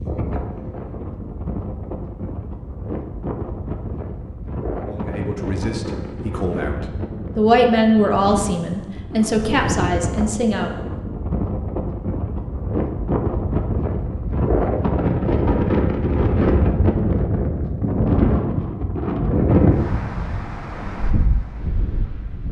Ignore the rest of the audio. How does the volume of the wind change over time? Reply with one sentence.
The loudness of the wind goes up.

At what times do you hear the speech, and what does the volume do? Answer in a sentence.
You can hear the speech from 4.8 to 10.8 s, getting louder then quieter.